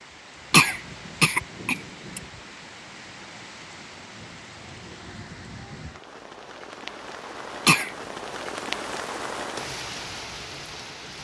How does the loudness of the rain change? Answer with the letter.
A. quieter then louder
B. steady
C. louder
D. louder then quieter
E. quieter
C.